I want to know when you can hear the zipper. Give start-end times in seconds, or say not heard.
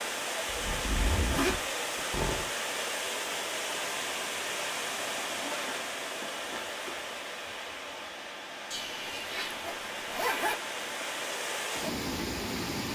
0.5-2.5, 5.0-7.0, 8.7-10.6.